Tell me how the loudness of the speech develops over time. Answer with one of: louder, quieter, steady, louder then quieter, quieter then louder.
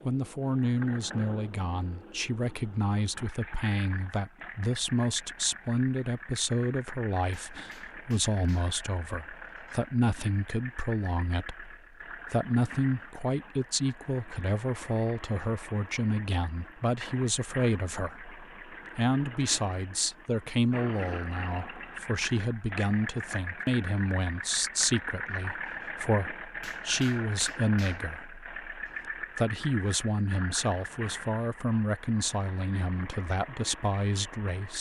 steady.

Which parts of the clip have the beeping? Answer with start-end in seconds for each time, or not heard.
not heard.